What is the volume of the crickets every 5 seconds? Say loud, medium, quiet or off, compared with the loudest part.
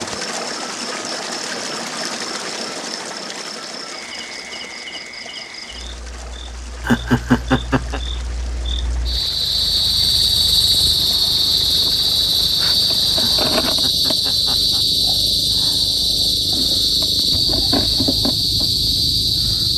quiet, medium, loud, loud.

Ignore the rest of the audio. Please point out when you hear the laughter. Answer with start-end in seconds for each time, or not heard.
6.8-8.0, 13.2-14.8.